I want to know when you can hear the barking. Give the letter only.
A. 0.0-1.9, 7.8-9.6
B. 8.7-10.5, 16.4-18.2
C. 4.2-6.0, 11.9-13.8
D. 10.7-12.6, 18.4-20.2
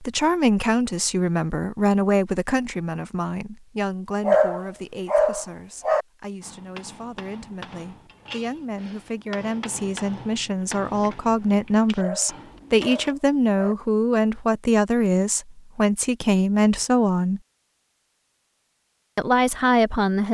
C.